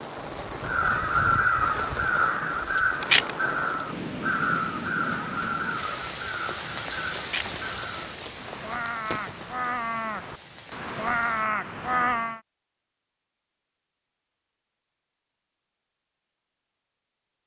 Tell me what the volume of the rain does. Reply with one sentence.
The loudness of the rain goes down.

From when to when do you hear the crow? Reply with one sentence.
You can hear the crow from 0.6 to 12.4 s.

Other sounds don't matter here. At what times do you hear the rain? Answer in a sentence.
The rain can be heard from 0.0 to 11.5 s.